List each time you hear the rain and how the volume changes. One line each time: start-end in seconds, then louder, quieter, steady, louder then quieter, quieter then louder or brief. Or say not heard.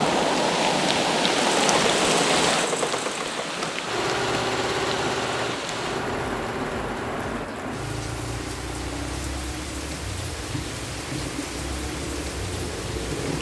0.0-13.3 quieter.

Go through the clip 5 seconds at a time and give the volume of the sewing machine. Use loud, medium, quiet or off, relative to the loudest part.
loud, medium, medium.